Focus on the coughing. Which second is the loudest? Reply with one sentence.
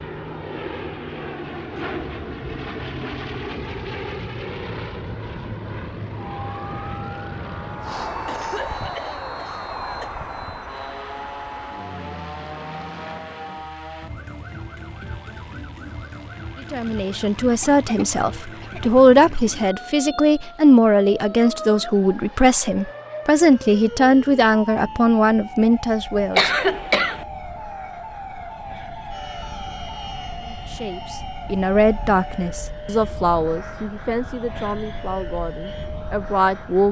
The loudest moment of the coughing is at 27 seconds.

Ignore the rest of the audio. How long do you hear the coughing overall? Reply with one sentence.
You can hear the coughing for 5 seconds altogether.